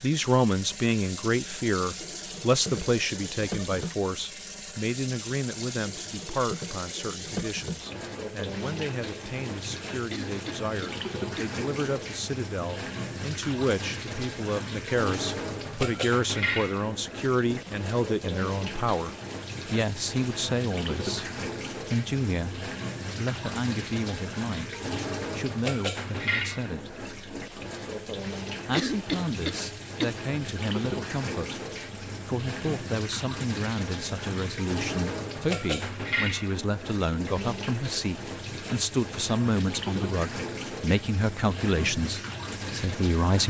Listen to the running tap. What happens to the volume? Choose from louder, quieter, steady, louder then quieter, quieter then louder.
steady.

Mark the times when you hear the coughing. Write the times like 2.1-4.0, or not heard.
10.1-11.5, 28.7-30.1.